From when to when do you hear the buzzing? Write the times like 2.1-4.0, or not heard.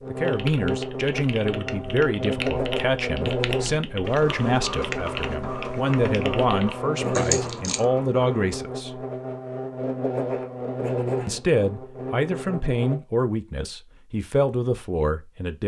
0.0-12.9.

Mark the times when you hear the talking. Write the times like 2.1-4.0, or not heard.
0.1-9.1, 11.2-15.6.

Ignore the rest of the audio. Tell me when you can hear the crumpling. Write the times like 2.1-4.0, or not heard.
7.0-7.8.